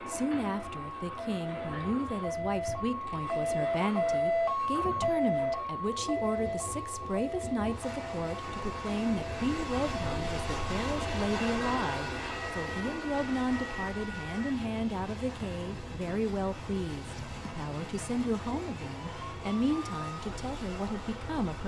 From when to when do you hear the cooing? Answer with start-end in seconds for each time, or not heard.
not heard.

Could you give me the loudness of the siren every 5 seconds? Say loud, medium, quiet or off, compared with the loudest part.
loud, loud, medium, quiet, quiet.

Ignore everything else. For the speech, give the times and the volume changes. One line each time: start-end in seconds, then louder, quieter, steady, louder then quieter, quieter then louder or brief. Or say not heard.
0.1-21.6 steady.